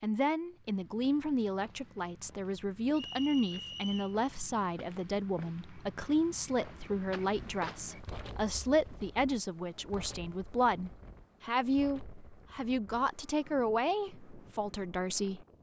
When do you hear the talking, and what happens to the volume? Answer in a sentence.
The talking can be heard from 0.0 to 15.4 s, at a steady volume.